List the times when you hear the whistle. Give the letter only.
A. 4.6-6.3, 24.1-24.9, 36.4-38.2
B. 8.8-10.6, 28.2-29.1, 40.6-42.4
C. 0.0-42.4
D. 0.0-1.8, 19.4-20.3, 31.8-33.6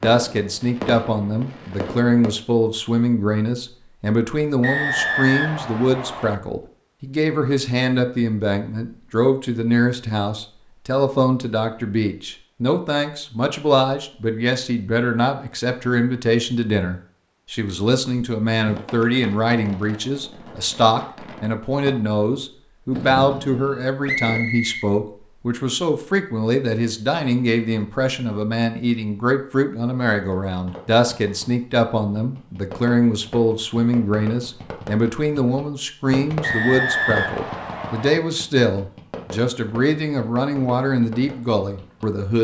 A.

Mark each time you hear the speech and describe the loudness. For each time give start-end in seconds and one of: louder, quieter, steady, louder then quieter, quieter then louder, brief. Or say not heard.
0.0-42.4 steady.